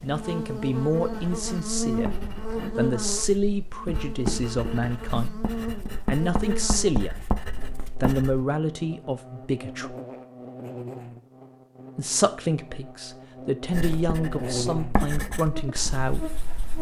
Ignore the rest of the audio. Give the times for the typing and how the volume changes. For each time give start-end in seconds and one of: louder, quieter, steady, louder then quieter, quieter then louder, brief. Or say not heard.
not heard.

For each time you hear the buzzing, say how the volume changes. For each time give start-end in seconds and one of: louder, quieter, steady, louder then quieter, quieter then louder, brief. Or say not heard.
0.0-16.7 quieter then louder.